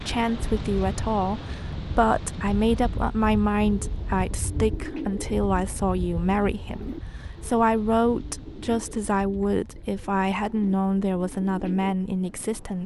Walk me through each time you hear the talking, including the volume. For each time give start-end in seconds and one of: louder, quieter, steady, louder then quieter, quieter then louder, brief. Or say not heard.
0.0-12.8 steady.